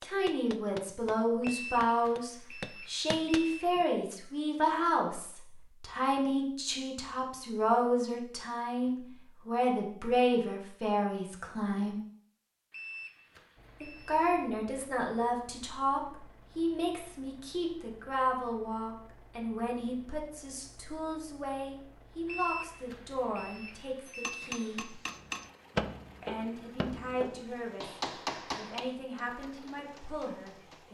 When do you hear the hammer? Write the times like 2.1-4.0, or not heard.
0.0-4.2, 24.1-30.8.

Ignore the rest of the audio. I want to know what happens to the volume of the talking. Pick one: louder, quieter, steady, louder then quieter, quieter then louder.
quieter.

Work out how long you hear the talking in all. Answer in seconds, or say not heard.
28 s.